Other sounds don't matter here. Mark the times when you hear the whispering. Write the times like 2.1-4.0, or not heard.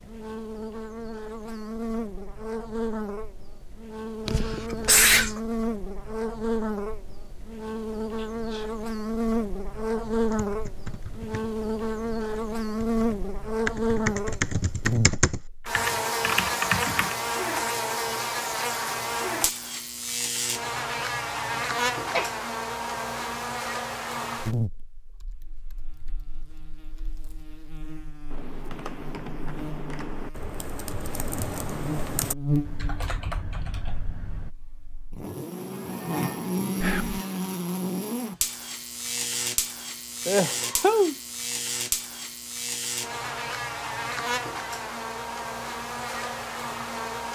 8.2-8.8, 36.8-37.2.